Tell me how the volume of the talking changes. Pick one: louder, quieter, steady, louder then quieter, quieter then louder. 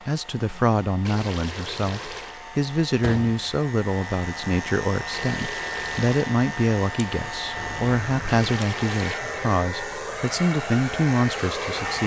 steady.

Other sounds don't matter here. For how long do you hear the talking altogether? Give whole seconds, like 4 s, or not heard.
12 s.